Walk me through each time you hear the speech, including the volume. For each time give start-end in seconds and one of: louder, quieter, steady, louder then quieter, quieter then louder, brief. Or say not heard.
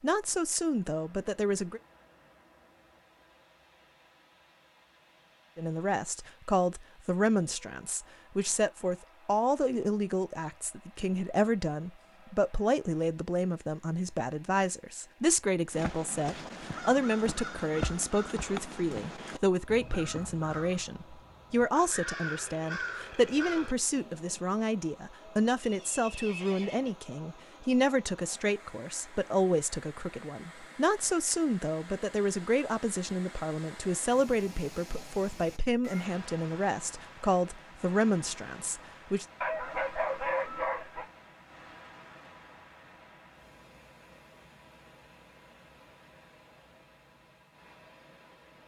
0.0-1.8 brief
5.5-39.2 steady.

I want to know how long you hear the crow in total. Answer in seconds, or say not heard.
9 s.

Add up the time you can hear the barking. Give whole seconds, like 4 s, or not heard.
2 s.